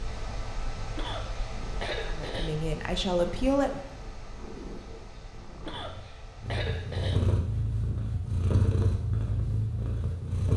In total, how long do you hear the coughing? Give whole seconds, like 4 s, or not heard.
3 s.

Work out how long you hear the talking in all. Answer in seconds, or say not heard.
2 s.